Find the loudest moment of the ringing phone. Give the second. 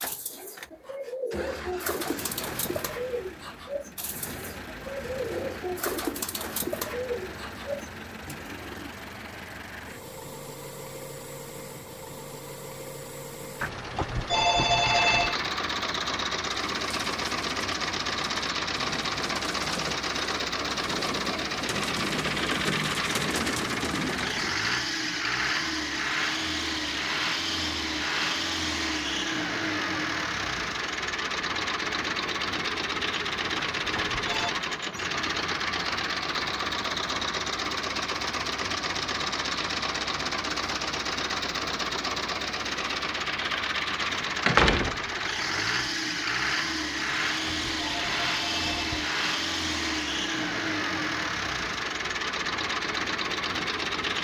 15 s.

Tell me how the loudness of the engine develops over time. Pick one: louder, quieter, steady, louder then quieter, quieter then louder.
louder.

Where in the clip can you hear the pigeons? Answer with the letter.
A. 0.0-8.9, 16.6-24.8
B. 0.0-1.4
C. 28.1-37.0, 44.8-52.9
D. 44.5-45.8
A.